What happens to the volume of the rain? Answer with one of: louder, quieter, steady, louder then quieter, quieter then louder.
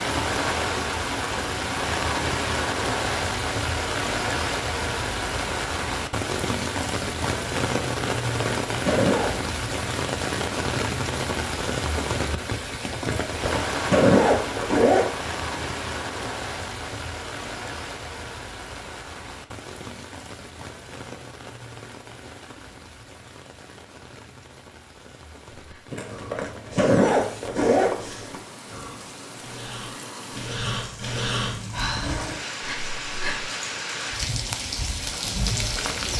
quieter then louder.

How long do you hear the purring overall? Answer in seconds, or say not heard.
not heard.